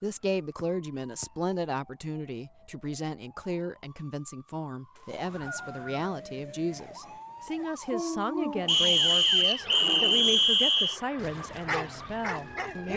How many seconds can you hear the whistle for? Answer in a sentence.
You can hear the whistle for 4 seconds altogether.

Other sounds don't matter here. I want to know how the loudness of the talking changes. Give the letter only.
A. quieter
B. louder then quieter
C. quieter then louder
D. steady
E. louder
D.